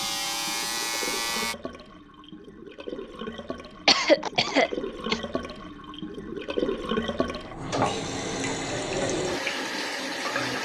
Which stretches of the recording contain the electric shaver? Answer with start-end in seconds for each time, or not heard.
0.0-1.6.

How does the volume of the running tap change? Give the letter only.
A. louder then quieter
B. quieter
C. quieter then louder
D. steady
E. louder
E.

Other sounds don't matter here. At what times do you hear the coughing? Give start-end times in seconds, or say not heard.
3.9-5.2.